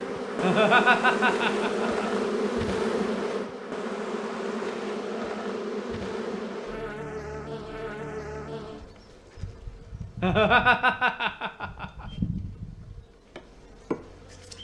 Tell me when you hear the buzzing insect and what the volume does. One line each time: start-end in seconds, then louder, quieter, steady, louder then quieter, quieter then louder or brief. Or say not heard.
0.0-14.5 quieter then louder.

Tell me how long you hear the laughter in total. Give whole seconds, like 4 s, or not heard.
4 s.